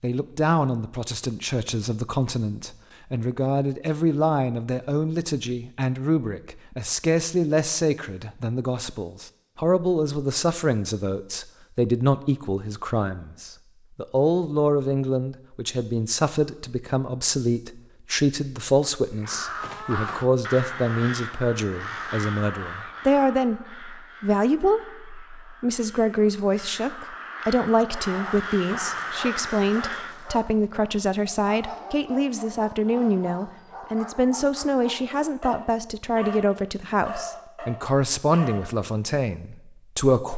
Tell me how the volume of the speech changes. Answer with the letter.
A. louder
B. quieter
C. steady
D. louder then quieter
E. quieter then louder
C.